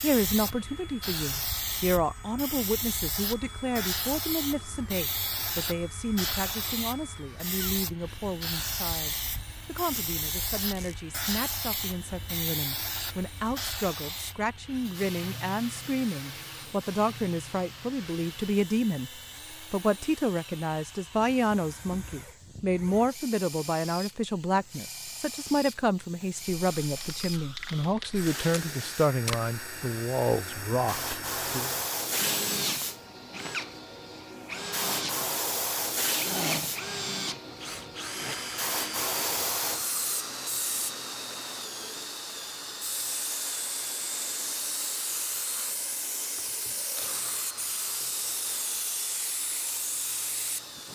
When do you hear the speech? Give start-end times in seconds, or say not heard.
0.0-19.1, 19.7-31.7.